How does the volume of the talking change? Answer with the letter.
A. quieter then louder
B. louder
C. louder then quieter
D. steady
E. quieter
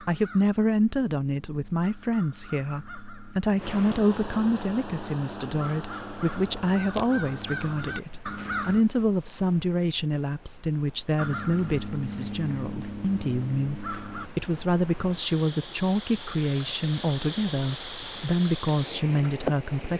D.